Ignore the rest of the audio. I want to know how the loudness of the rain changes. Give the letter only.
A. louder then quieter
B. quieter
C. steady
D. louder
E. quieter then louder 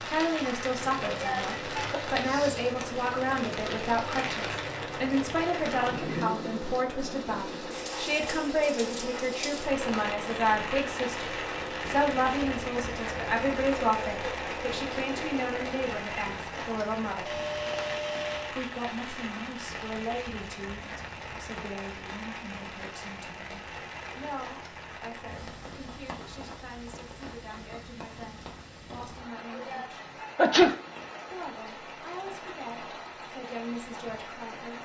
B.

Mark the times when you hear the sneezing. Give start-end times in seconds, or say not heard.
1.1-2.0, 29.5-30.8.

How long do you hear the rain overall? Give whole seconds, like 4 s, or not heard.
35 s.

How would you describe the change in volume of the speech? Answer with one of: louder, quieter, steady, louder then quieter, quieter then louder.
quieter.